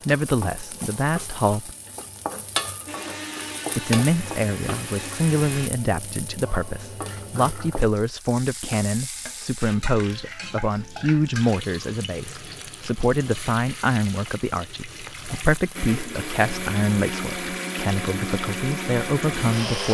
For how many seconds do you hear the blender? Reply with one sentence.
You can hear the blender for 7 seconds altogether.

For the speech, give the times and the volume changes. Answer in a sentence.
You can hear the speech briefly from 0.1 to 1.7 s; and from 3.8 to 19.8 s, at a steady volume.